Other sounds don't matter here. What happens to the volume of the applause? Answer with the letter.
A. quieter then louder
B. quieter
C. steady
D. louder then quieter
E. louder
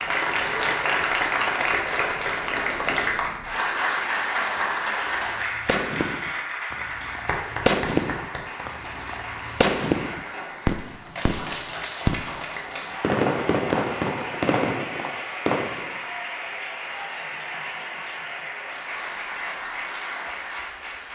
B.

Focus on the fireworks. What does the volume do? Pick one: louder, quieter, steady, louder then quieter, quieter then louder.
louder.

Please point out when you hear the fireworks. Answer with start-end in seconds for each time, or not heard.
5.0-15.9.